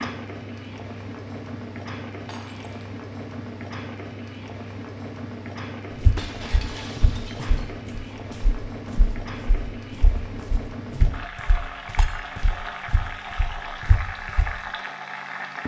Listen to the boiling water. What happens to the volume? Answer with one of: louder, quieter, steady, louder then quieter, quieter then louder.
steady.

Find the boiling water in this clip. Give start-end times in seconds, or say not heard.
0.0-15.6.